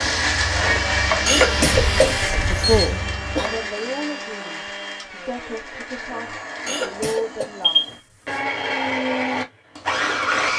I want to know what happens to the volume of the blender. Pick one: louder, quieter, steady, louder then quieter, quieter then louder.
quieter then louder.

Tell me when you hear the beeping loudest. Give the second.
8 s.